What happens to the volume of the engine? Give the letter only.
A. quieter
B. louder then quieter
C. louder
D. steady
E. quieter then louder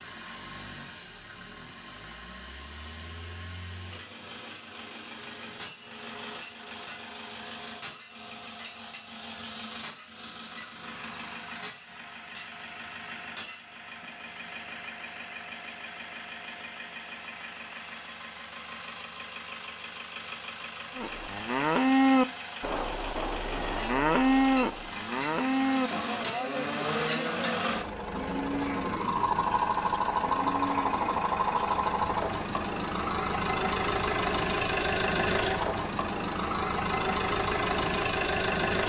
C.